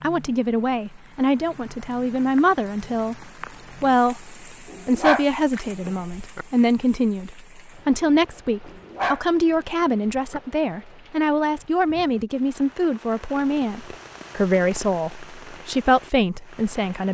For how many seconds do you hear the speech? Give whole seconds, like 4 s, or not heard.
17 s.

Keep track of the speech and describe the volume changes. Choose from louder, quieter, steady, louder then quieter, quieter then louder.
steady.